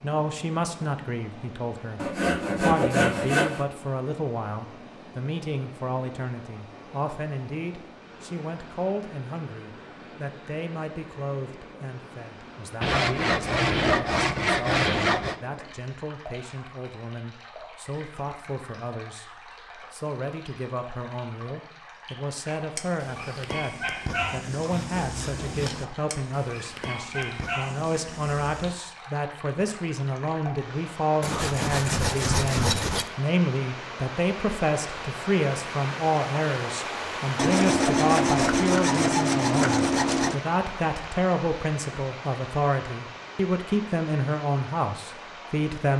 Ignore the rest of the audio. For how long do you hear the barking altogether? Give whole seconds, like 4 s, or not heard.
6 s.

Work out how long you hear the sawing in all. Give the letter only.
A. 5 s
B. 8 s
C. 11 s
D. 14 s
C.